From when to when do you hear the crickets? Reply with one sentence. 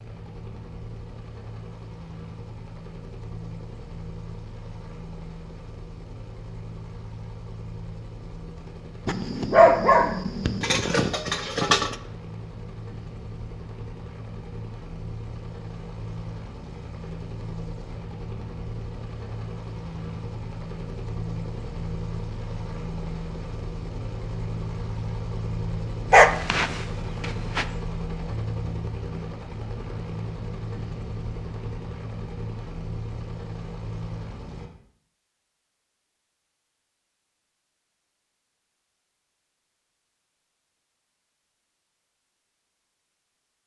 The crickets can't be heard in this clip.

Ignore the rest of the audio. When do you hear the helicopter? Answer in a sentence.
The helicopter can be heard from 0.0 to 34.7 s.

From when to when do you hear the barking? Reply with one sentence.
The barking can be heard from 9.1 to 11.9 s and from 26.1 to 27.6 s.